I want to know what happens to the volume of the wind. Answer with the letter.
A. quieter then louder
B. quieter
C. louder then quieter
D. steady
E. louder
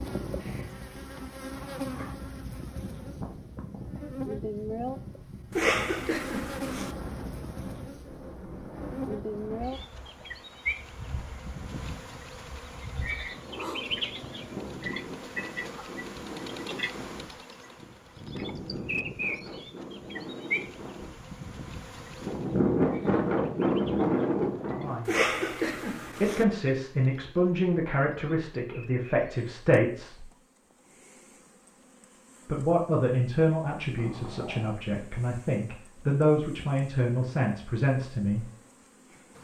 E.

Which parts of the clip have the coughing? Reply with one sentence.
You can hear the coughing from 5.5 to 7.0 s and from 25.1 to 26.4 s.